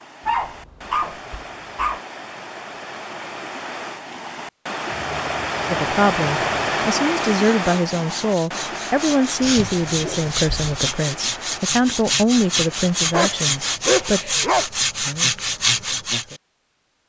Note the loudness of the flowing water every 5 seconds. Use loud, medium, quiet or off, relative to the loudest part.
medium, loud, quiet, off.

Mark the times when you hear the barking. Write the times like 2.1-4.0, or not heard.
0.2-2.0, 4.9-7.0, 9.4-10.8, 13.1-14.7.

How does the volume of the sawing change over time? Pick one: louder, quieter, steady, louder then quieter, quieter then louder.
louder.